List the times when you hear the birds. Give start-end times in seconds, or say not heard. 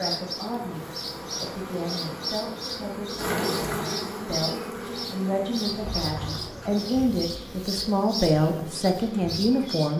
0.0-9.9.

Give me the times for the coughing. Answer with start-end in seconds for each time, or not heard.
not heard.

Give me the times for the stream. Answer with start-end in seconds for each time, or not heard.
not heard.